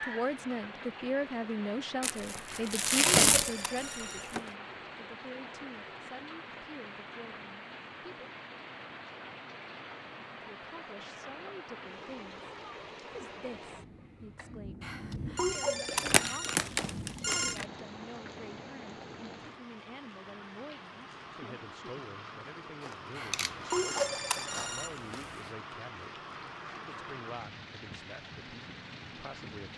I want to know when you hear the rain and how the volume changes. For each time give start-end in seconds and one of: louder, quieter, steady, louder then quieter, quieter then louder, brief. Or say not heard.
0.0-29.7 steady.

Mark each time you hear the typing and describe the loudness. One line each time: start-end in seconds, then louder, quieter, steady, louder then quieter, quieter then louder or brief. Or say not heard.
not heard.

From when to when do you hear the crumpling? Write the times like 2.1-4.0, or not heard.
2.0-4.4, 15.8-17.6, 22.8-25.0.